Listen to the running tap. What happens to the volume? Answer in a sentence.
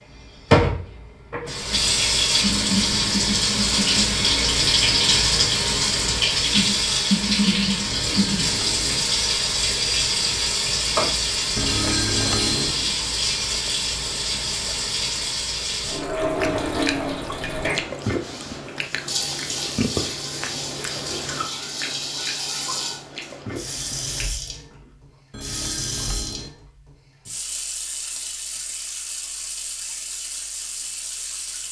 The volume of the running tap goes down.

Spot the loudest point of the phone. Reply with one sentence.
The volume of the phone peaks at 12 seconds.